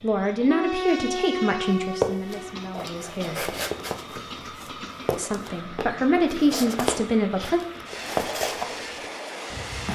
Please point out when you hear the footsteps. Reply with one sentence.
You can hear the footsteps from 2.0 to 9.9 s.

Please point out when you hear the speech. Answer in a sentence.
You can hear the speech from 0.0 to 3.5 s and from 5.0 to 7.6 s.